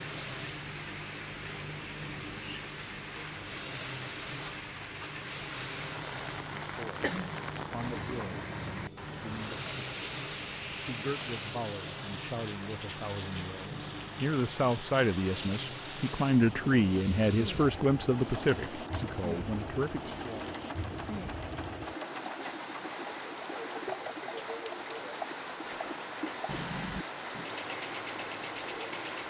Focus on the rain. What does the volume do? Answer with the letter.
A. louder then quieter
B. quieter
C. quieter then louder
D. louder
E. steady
E.